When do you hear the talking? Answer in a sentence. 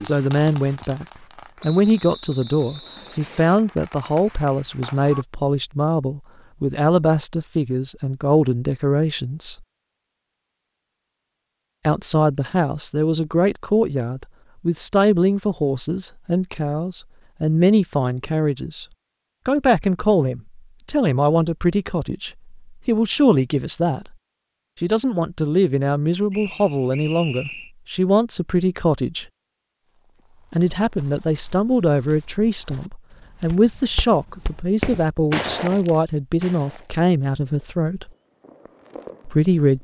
The talking can be heard from 0.0 to 9.6 s, from 11.8 to 18.9 s, from 19.4 to 24.1 s, from 24.8 to 29.2 s, from 30.5 to 38.1 s and from 39.2 to 39.7 s.